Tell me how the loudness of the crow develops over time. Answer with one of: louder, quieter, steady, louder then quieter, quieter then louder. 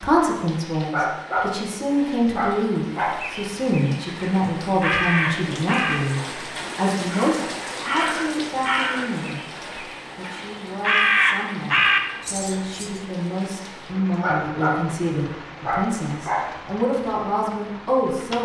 louder.